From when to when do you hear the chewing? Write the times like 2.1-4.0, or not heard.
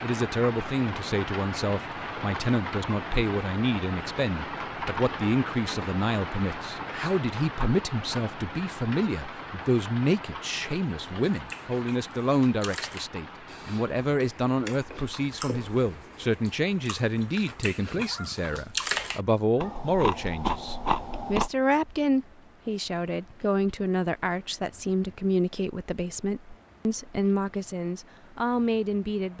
11.3-21.5.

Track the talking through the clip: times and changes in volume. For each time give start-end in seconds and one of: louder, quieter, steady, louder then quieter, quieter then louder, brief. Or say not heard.
0.0-29.3 steady.